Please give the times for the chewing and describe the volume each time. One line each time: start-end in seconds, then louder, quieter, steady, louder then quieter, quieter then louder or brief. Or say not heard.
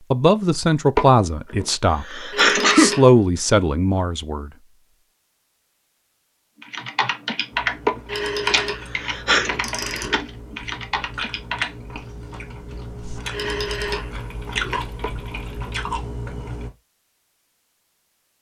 7.5-16.7 louder.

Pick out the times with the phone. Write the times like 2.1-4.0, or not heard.
2.3-3.0, 8.1-10.2, 13.3-14.8.